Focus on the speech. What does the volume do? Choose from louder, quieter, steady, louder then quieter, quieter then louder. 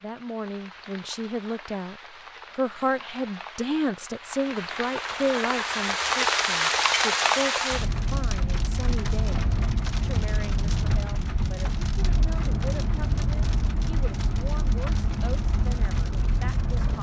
quieter.